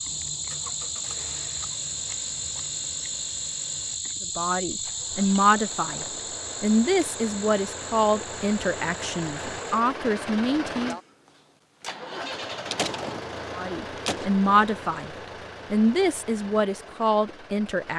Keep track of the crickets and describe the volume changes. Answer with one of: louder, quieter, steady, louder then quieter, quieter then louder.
quieter.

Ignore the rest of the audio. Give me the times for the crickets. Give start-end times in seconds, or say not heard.
0.0-9.8.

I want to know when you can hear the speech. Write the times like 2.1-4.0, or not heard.
4.3-10.9, 13.6-17.9.